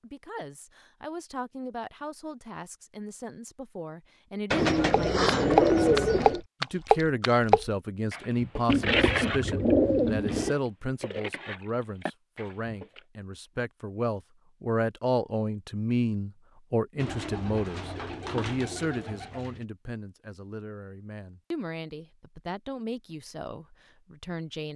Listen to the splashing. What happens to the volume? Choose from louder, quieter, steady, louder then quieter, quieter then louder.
quieter then louder.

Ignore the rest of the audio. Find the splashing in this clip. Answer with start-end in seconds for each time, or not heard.
4.9-13.0.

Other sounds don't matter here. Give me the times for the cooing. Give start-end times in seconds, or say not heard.
4.5-6.4, 8.7-10.6, 16.9-19.6.